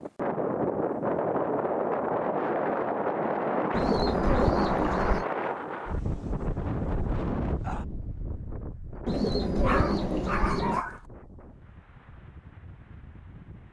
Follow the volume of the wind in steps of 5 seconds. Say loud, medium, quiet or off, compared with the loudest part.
loud, medium, quiet.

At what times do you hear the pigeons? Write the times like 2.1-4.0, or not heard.
3.7-5.2, 9.1-10.8.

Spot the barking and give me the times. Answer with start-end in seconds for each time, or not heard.
9.6-11.1.